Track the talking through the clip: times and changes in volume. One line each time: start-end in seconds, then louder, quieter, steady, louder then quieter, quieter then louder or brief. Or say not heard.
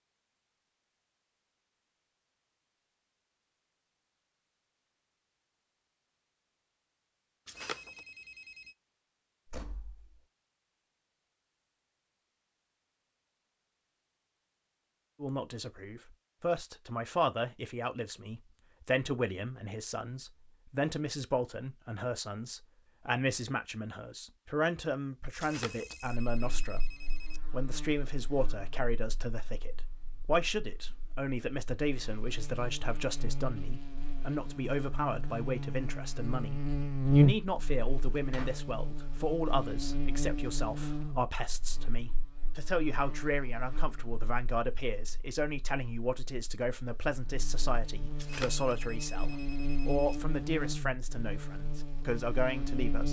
15.2-53.0 steady.